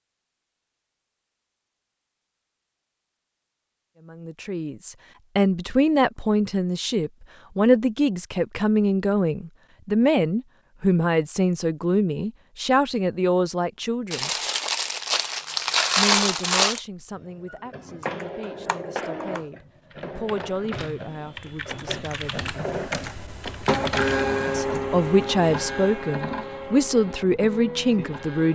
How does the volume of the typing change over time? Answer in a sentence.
The volume of the typing goes down, then up.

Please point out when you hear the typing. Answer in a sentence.
The typing can be heard from 18.0 to 24.2 s.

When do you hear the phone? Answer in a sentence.
You can't hear the phone here.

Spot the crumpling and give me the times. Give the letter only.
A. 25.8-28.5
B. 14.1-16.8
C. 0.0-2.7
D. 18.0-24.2
B.